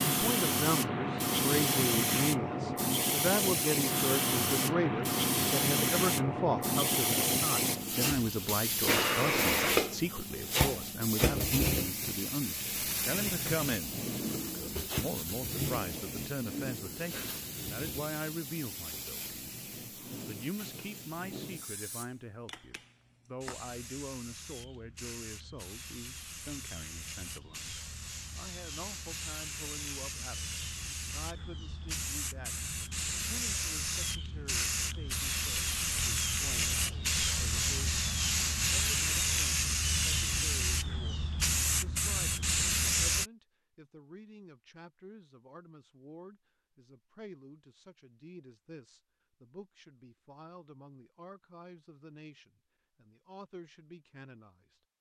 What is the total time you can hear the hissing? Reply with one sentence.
You can hear the hissing for 43 seconds altogether.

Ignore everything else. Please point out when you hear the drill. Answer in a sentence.
You can't hear the drill here.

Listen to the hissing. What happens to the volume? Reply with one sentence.
The loudness of the hissing goes down, then up.